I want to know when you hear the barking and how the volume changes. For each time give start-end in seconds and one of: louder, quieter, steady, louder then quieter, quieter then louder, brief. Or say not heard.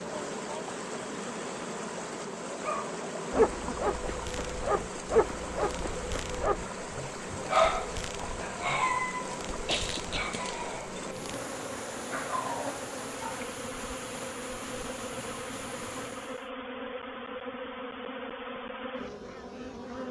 2.6-11.1 quieter
12.1-13.4 brief.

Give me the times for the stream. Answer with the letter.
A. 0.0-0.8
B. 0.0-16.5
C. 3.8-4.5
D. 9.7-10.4
B.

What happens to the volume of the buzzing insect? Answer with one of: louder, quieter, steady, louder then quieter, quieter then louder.
steady.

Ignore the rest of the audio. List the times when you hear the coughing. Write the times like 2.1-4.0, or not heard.
9.7-10.4.